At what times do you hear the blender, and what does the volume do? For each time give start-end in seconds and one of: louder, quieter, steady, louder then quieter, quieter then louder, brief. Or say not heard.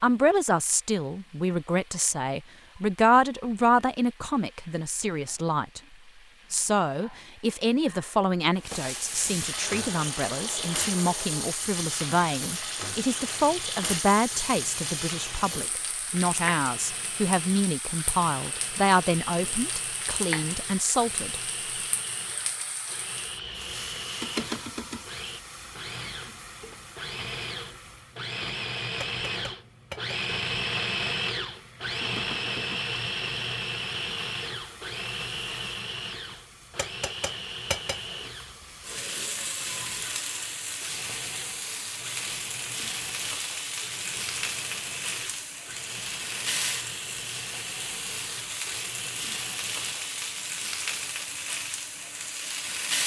9.6-50.0 louder then quieter.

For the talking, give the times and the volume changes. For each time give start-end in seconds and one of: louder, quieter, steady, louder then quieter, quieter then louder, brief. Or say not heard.
0.0-5.8 louder then quieter
6.5-21.4 steady.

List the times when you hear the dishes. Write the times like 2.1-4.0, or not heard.
not heard.